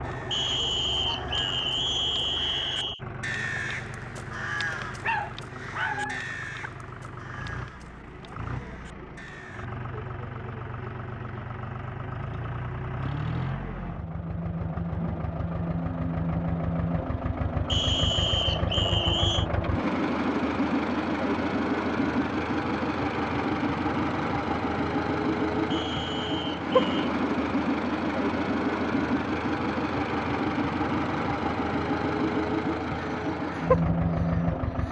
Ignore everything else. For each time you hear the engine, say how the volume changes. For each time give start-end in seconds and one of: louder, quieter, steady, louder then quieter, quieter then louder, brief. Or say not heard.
0.0-34.8 louder.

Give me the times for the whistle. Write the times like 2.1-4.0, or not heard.
0.3-3.0, 17.6-19.4, 25.7-27.1.